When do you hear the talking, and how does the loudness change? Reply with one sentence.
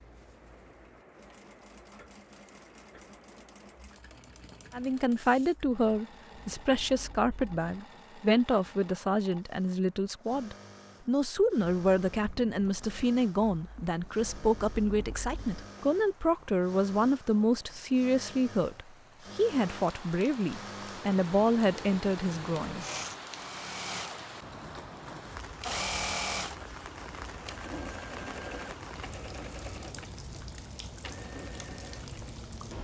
The talking can be heard from 4.7 to 22.9 s, at a steady volume.